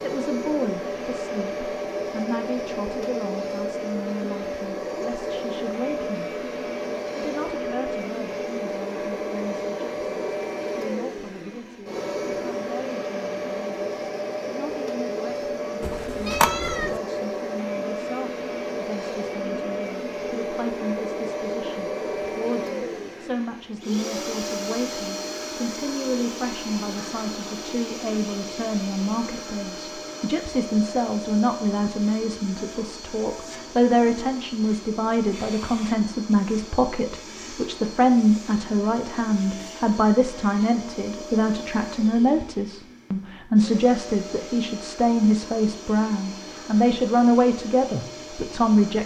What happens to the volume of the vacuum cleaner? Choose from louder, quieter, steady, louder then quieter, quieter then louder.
quieter.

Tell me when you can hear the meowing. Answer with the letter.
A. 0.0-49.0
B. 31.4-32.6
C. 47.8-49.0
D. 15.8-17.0
D.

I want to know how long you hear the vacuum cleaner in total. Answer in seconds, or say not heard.
49 s.